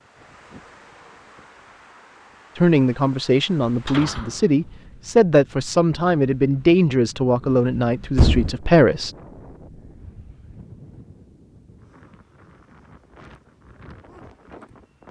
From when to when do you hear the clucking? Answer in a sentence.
The clucking can't be heard in this clip.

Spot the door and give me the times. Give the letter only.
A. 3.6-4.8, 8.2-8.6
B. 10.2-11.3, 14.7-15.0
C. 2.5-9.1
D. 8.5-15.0
A.